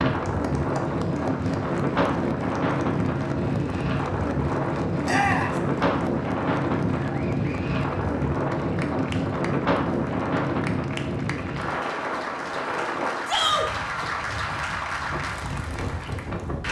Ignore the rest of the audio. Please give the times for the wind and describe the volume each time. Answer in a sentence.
You can hear the wind from 0.0 to 16.6 s, getting quieter.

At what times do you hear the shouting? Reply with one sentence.
The shouting can be heard from 5.0 to 5.5 s and from 13.2 to 13.7 s.